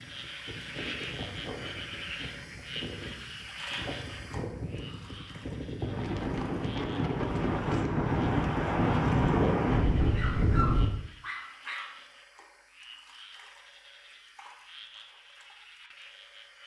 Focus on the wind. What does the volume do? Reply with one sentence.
The volume of the wind goes up.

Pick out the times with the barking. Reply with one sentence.
You can hear the barking from 10.0 to 12.0 s.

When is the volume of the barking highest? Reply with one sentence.
The volume of the barking peaks at 11 seconds.